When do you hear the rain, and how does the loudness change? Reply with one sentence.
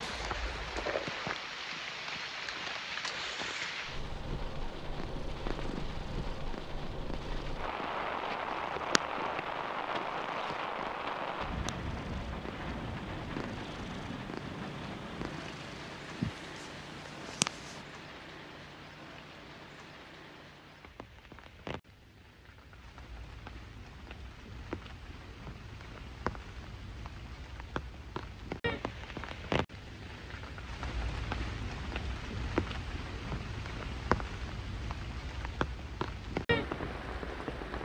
The rain can be heard from 0.0 to 37.8 s, getting quieter then louder.